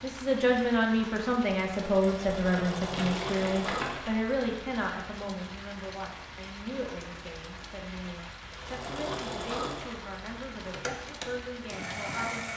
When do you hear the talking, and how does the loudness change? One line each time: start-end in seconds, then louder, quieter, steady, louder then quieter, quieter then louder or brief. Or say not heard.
0.0-12.5 quieter.